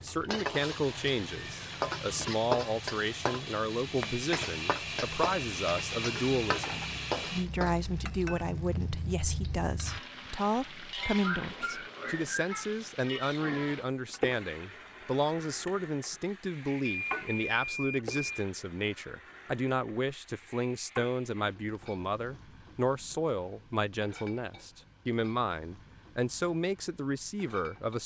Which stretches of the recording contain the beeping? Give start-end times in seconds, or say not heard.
16.9-18.4.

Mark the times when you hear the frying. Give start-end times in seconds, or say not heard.
0.0-28.0.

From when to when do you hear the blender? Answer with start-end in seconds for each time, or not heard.
0.0-7.5.